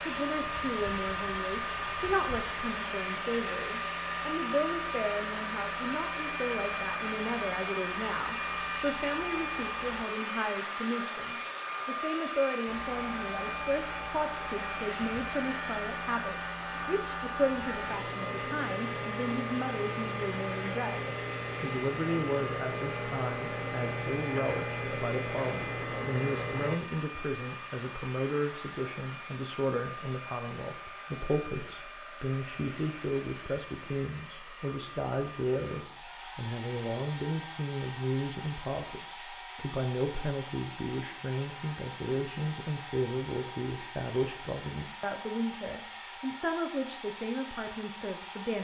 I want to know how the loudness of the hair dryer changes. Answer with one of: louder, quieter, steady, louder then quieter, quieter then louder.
quieter.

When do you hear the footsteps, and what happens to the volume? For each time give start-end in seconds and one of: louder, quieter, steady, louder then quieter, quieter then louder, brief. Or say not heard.
not heard.